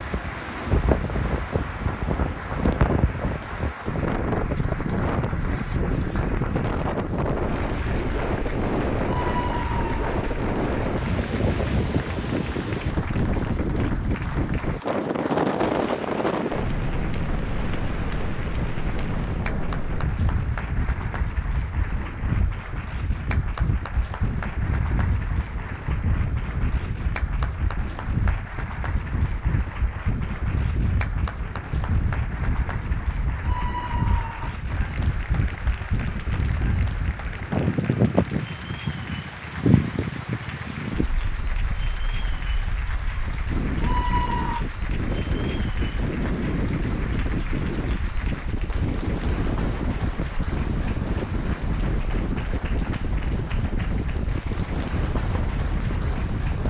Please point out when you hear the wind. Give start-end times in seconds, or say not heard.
0.0-56.6.